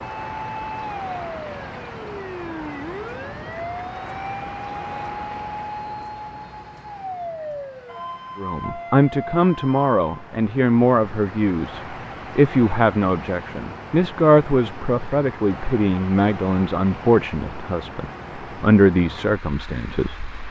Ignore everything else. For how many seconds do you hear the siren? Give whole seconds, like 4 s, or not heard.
10 s.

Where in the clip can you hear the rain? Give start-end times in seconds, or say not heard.
not heard.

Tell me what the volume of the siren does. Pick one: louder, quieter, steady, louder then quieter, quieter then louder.
steady.